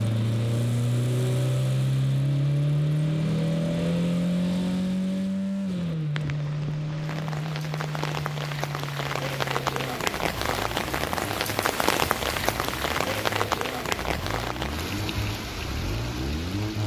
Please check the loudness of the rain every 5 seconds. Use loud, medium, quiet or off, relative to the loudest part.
off, medium, loud, medium.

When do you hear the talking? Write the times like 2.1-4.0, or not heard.
not heard.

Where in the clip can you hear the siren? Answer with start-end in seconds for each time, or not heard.
not heard.